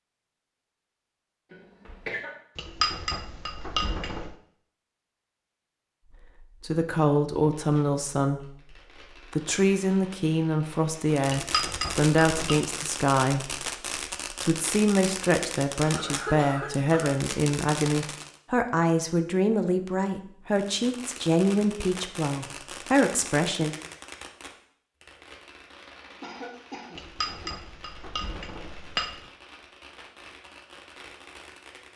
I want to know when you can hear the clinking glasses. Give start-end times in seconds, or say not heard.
2.5-4.3, 11.2-12.6, 26.9-29.2.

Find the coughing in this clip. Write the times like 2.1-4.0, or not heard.
1.5-2.3, 15.8-17.1, 26.2-27.5.